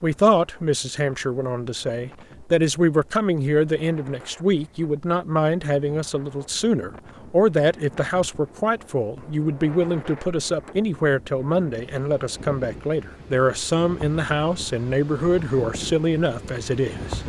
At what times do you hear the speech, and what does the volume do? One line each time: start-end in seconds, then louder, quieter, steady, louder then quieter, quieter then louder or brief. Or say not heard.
0.0-17.2 steady.